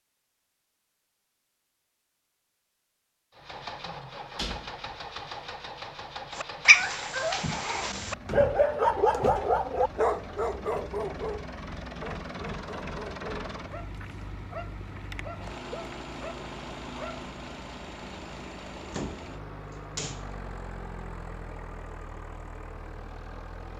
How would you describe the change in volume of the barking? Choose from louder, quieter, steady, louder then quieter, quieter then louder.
quieter.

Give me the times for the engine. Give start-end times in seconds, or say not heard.
3.3-23.7.